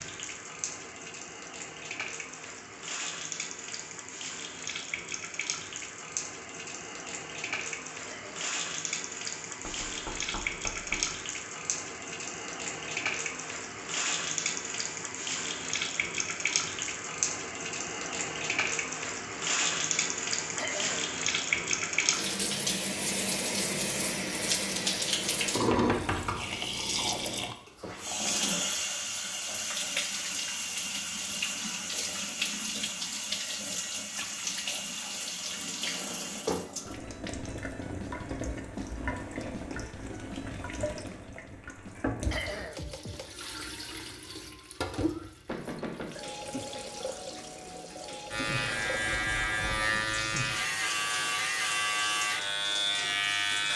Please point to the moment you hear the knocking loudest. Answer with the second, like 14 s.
26 s.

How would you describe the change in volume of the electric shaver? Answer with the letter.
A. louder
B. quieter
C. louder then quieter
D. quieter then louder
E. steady
E.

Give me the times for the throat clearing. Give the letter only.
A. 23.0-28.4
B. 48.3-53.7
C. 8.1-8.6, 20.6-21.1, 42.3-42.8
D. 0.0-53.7
C.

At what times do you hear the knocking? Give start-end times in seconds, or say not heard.
9.7-11.1, 25.6-26.4, 45.5-46.2.